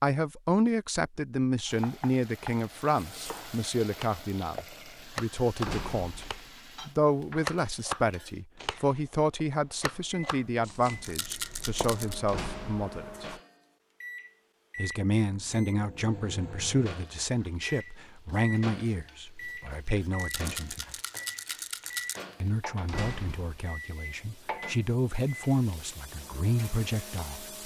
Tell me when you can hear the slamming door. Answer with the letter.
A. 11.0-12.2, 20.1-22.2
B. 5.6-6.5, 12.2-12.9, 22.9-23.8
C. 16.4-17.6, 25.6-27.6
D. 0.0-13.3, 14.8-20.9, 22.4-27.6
B.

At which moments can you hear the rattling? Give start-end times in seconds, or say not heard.
11.0-12.2, 20.1-22.2.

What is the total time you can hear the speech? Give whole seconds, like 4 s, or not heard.
25 s.